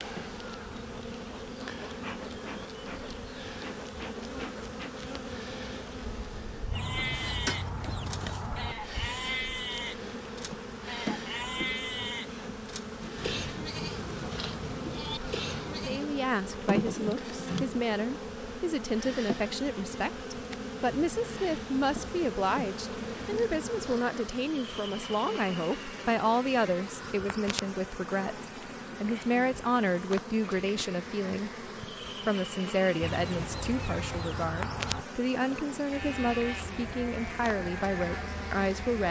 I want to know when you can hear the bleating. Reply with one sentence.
You can hear the bleating from 6.7 to 16.1 s and from 35.9 to 39.0 s.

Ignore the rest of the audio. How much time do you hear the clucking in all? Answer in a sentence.
The clucking can be heard for 4 seconds in total.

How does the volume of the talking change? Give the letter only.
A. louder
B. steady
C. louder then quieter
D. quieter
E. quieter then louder
B.